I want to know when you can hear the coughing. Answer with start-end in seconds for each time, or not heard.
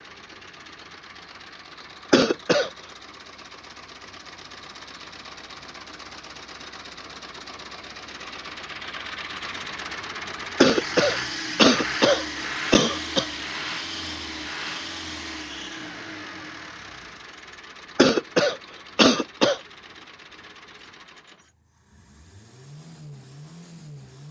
2.1-2.7, 10.6-13.2, 17.9-19.6.